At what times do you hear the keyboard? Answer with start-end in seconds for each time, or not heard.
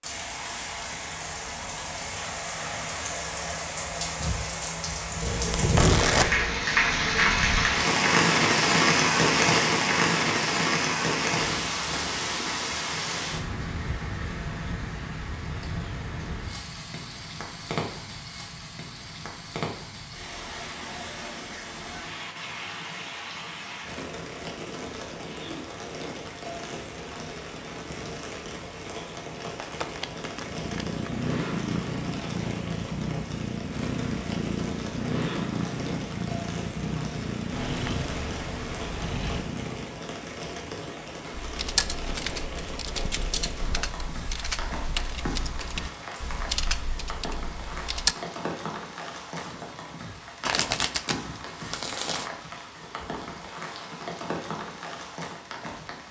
41.3-48.1.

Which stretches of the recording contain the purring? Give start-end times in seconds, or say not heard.
30.4-40.0.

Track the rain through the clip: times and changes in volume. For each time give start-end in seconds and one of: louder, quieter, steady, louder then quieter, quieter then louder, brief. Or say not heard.
0.0-56.0 quieter.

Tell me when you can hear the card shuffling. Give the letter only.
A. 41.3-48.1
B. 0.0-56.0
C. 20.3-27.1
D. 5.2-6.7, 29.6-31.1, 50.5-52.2
D.